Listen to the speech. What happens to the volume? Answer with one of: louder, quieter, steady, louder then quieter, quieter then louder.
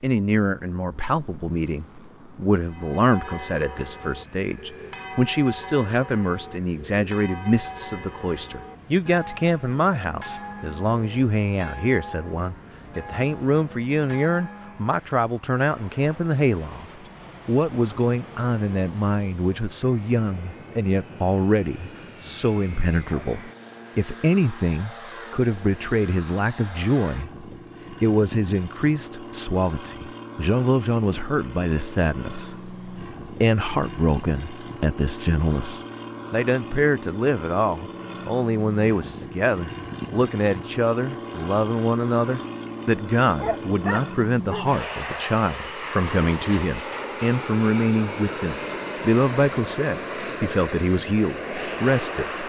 steady.